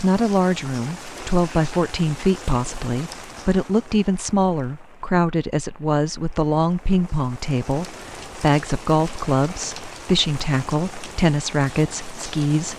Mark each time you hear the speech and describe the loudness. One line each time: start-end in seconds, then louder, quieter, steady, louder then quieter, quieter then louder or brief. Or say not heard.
0.0-12.7 steady.